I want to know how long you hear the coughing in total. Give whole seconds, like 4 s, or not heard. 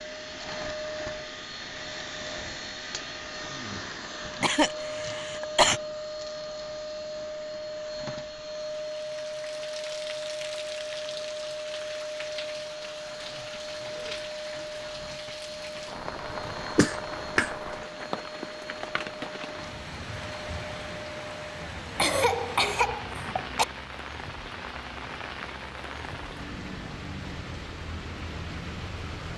4 s.